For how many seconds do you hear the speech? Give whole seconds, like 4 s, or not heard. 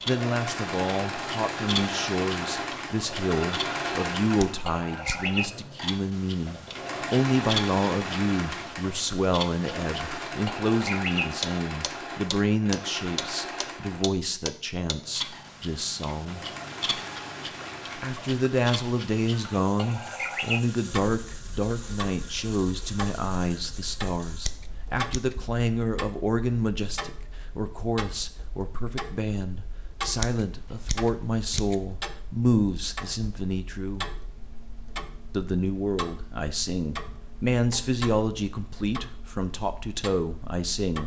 38 s.